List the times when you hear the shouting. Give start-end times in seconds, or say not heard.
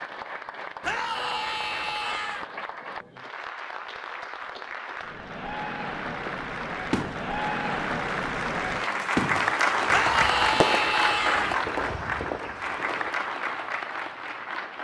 0.8-2.5, 9.9-11.6.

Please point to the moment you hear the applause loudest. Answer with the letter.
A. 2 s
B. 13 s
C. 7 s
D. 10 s
D.